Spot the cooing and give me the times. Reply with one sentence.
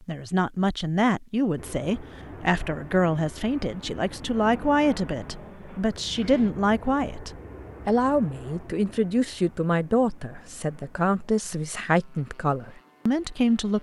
You can't hear the cooing here.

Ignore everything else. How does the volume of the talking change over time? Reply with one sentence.
The volume of the talking stays about the same.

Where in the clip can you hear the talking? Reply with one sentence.
The talking can be heard from 0.0 to 13.7 s.